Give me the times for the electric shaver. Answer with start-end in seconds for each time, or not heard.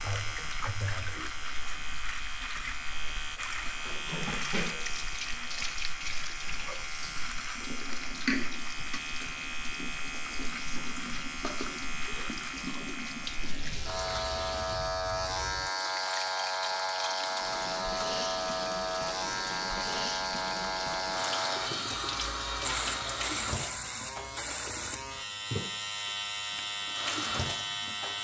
0.0-28.2.